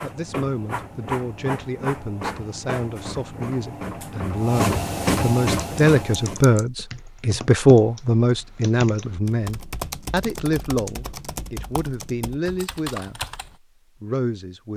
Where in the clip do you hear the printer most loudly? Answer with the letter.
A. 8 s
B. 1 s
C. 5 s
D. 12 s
C.